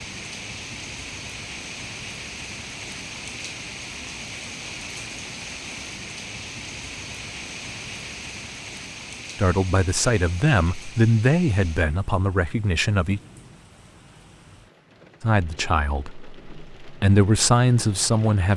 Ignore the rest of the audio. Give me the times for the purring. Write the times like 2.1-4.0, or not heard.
not heard.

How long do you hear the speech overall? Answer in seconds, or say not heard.
7 s.